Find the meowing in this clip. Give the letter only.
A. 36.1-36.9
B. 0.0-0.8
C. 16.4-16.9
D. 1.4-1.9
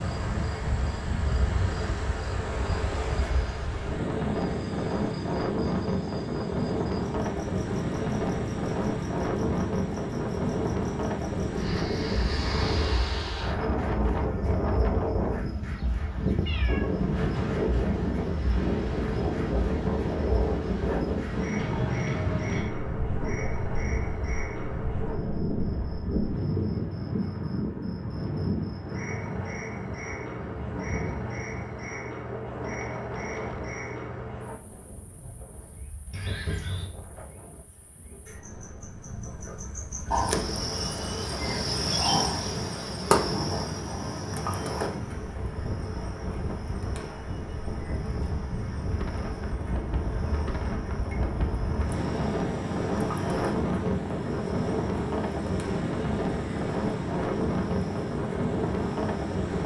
C.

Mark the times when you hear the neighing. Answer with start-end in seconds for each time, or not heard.
36.1-36.9.